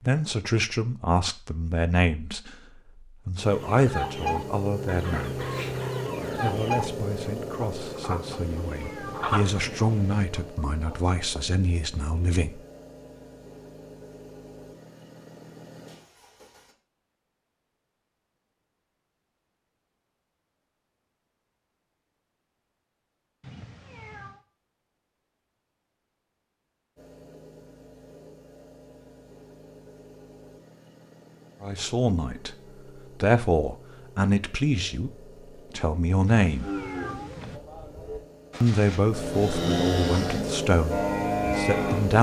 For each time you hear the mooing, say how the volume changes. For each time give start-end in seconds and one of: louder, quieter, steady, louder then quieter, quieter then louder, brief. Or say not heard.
36.6-42.1 louder.